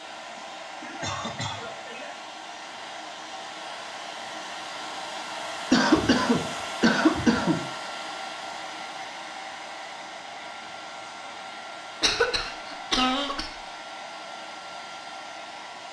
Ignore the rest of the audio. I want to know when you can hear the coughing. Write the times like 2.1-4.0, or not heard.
0.3-2.2, 5.7-7.7, 12.0-13.5.